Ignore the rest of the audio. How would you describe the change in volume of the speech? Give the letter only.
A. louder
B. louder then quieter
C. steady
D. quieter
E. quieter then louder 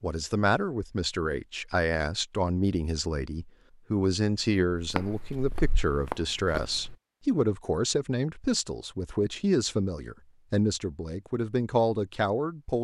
C.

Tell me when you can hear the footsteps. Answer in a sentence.
The footsteps can be heard from 4.8 to 7.0 s.